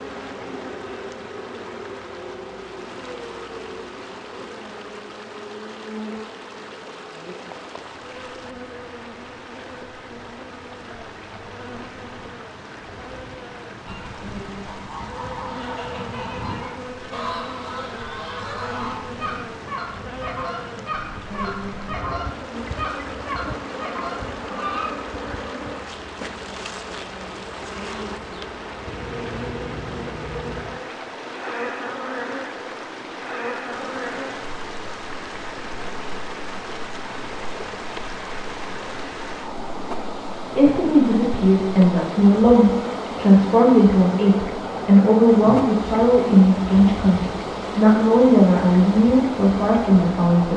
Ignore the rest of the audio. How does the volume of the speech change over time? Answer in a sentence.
The loudness of the speech stays about the same.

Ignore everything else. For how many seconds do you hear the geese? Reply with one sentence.
You can hear the geese for 11 seconds altogether.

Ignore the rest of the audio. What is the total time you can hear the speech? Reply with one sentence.
You can hear the speech for 10 seconds altogether.